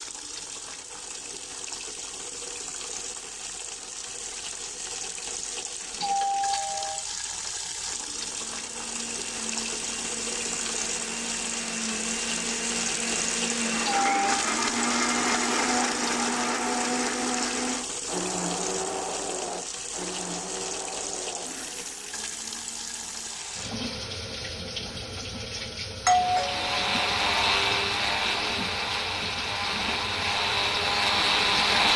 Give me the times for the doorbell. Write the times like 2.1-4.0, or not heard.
5.9-7.0, 13.8-14.3, 26.1-27.2.